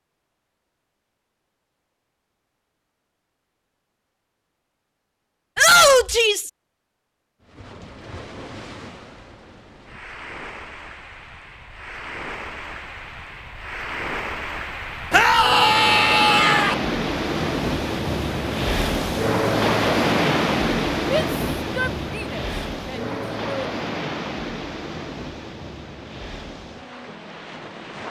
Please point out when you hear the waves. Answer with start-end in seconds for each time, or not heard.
7.4-28.0.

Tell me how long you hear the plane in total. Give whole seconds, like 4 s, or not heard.
not heard.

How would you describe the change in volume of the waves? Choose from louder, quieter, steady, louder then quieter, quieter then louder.
louder then quieter.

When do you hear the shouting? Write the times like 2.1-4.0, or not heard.
5.5-6.5, 15.1-16.8, 21.1-23.8.